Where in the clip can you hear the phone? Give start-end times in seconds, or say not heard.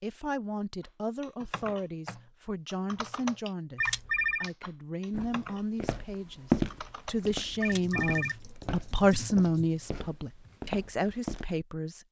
3.8-4.5, 7.6-8.5.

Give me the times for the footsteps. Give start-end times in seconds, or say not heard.
5.1-11.4.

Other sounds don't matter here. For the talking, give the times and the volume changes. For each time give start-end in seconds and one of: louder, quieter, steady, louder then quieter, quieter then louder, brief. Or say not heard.
0.0-12.0 louder.